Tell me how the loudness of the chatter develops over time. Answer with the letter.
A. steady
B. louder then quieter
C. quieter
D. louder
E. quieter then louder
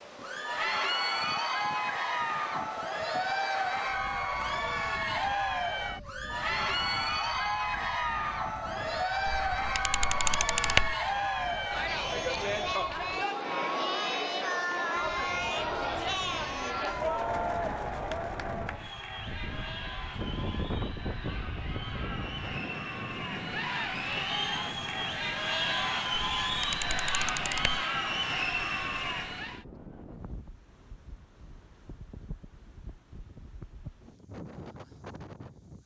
E.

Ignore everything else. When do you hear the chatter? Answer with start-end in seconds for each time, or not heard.
0.1-29.6.